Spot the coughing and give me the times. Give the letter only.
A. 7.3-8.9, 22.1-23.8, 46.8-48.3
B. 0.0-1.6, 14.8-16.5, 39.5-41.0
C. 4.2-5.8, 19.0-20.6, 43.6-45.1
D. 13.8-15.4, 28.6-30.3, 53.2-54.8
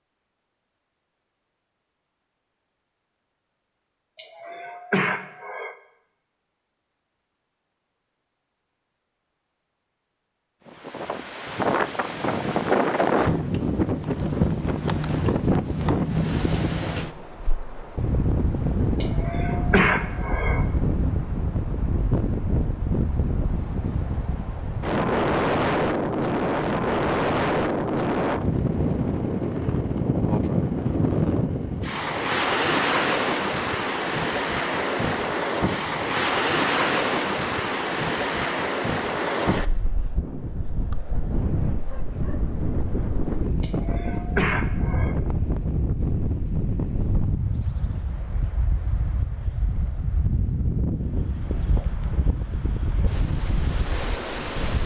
C.